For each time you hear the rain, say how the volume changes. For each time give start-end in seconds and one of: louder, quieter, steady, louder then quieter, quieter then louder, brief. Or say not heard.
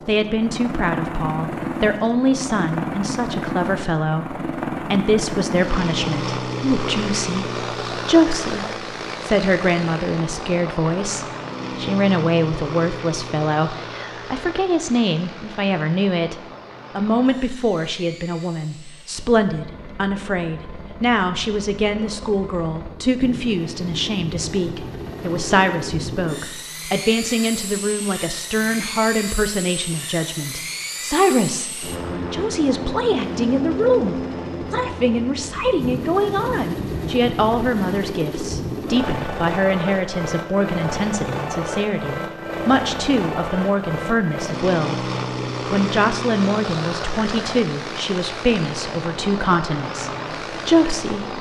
not heard.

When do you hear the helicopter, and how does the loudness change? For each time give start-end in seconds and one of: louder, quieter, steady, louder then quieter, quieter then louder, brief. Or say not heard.
0.0-51.3 quieter then louder.